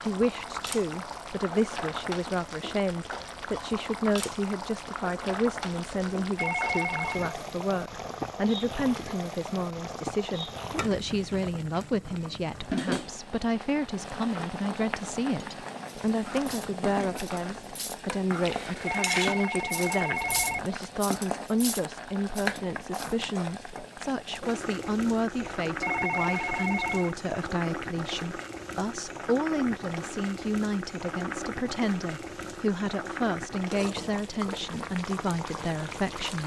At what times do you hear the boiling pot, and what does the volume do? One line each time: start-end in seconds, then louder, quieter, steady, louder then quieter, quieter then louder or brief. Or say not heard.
0.0-36.4 steady.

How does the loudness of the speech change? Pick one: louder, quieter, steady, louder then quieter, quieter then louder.
steady.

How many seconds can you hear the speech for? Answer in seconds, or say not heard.
36 s.